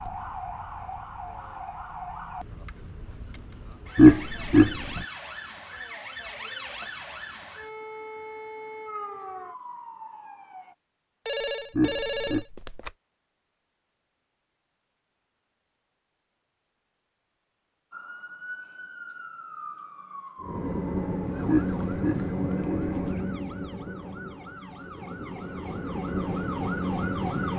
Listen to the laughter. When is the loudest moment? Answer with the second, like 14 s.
4 s.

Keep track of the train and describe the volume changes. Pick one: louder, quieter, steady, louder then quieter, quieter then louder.
quieter then louder.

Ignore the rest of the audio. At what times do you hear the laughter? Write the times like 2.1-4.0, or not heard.
4.0-5.0, 11.8-12.4, 21.4-23.1.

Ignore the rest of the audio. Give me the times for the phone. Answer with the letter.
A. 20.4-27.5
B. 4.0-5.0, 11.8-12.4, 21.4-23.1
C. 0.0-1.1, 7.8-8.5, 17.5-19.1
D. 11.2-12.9
D.